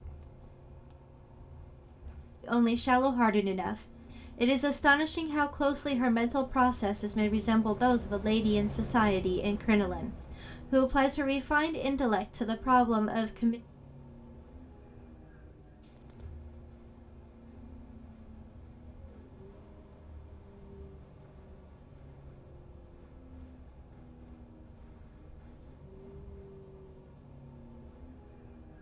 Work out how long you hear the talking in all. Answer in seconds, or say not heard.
11 s.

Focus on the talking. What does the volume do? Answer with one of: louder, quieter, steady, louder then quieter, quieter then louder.
steady.